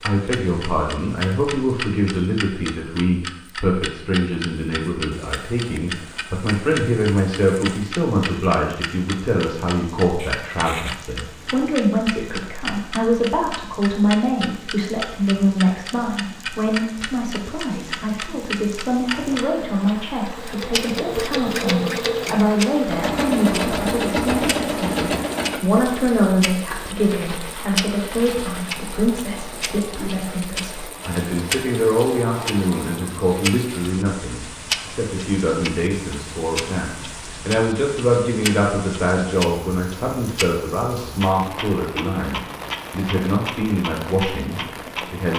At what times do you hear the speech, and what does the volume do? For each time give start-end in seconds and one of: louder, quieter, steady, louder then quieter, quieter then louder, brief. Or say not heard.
0.1-45.3 steady.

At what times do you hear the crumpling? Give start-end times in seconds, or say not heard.
10.2-11.1.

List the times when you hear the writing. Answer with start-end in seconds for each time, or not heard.
not heard.